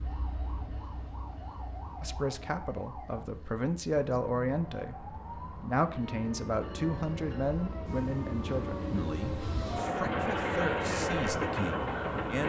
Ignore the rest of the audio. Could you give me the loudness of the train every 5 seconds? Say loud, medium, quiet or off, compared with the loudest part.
quiet, medium, loud.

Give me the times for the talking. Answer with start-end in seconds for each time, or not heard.
2.0-12.4.